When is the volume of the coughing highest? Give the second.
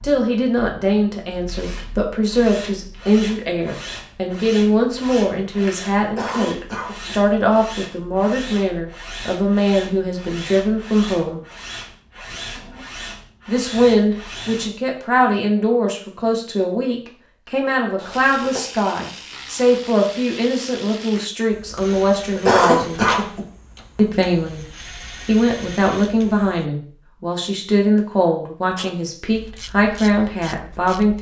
23 s.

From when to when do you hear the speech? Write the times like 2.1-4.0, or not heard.
0.0-11.4, 13.4-23.0, 23.9-24.6, 25.2-31.1.